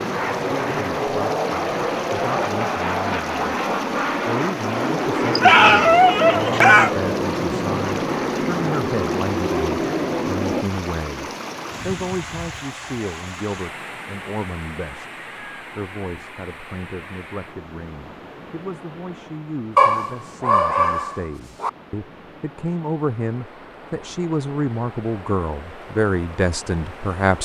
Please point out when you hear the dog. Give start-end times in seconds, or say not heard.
5.3-6.9, 19.8-21.7.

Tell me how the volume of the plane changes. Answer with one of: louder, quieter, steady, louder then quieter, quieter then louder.
steady.